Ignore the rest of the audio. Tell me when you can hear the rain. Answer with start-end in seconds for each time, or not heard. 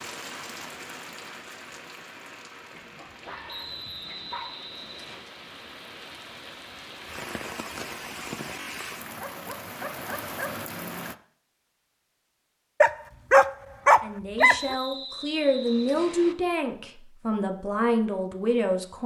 0.0-11.2.